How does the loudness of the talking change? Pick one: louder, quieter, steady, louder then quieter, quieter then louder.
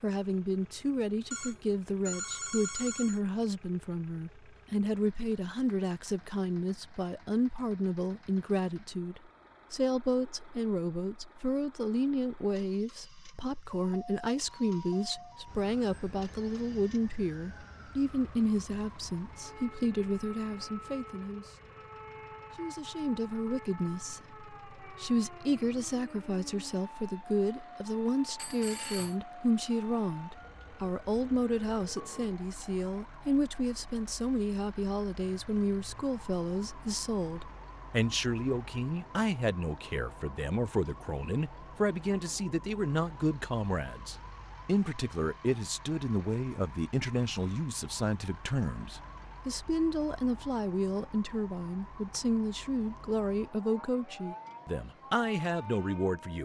steady.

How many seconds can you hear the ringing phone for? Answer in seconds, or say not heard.
3 s.